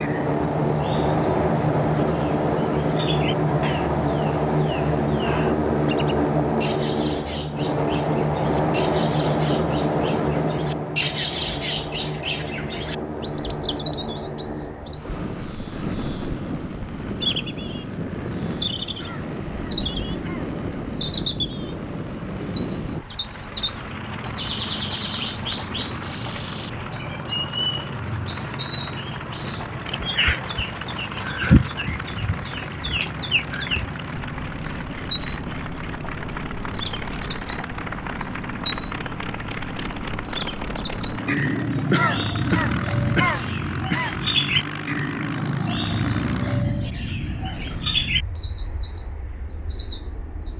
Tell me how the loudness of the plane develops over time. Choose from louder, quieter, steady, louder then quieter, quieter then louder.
quieter.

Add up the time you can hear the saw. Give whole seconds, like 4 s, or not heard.
not heard.